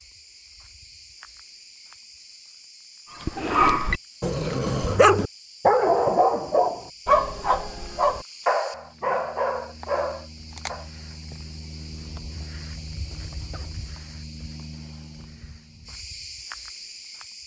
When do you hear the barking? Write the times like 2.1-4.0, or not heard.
3.2-10.8.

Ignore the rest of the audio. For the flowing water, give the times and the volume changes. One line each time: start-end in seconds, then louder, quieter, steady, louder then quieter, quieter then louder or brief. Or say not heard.
not heard.